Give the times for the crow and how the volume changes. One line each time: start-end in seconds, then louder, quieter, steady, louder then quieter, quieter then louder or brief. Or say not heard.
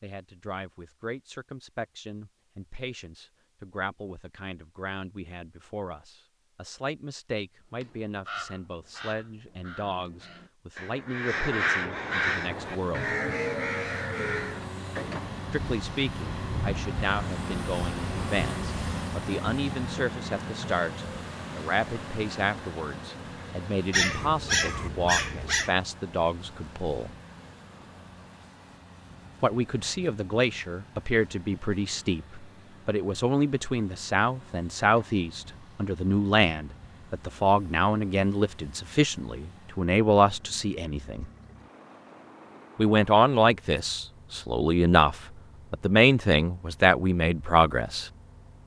7.8-14.7 quieter then louder.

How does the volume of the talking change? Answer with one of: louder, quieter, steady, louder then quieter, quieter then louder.
louder.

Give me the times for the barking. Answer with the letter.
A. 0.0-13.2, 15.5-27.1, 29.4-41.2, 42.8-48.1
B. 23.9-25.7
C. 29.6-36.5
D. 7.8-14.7
B.